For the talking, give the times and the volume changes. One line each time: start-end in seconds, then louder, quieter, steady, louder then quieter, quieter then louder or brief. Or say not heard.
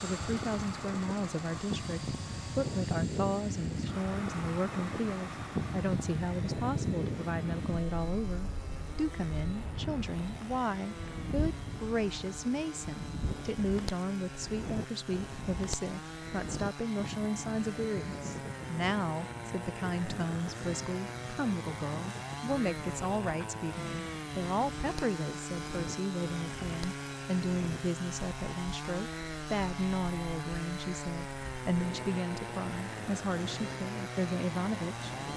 0.0-35.1 steady.